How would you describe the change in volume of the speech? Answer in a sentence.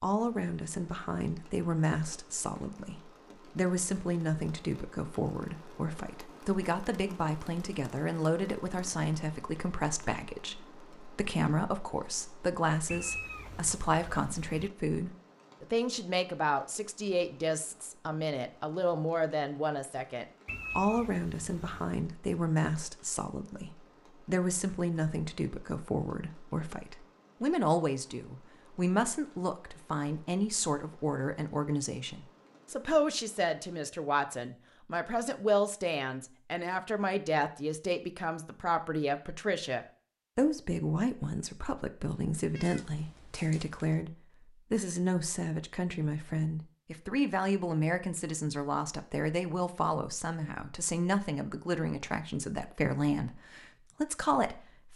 The volume of the speech stays about the same.